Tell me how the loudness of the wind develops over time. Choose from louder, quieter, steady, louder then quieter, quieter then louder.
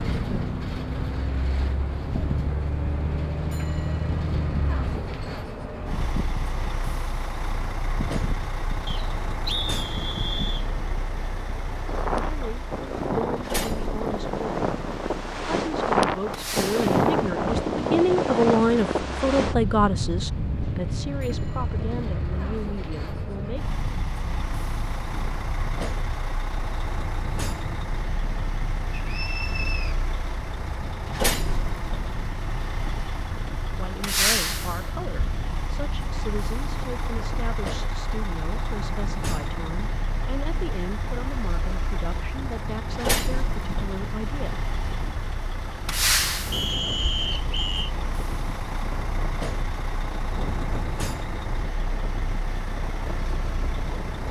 louder then quieter.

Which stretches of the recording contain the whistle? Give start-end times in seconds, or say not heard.
8.8-10.7, 28.9-29.9, 46.5-47.9.